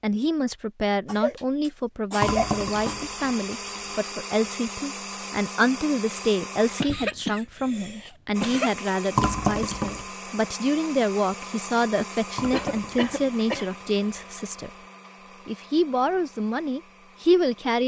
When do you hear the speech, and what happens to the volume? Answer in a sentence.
The speech can be heard from 0.0 to 14.7 s, at a steady volume; and briefly from 15.4 to 17.8 s.